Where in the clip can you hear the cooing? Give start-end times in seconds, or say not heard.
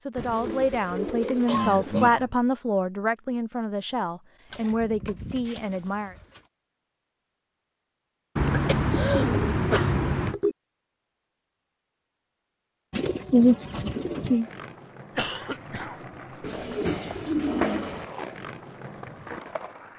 0.1-2.1, 4.5-6.4, 8.3-10.3, 12.9-14.4, 16.4-18.1.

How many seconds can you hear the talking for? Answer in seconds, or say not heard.
6 s.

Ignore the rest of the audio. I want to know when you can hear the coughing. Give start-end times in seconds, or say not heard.
1.4-2.3, 8.5-10.6, 15.2-16.0.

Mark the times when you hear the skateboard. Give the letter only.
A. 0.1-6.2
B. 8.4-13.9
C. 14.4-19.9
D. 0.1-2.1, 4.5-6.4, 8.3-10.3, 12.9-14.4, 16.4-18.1
C.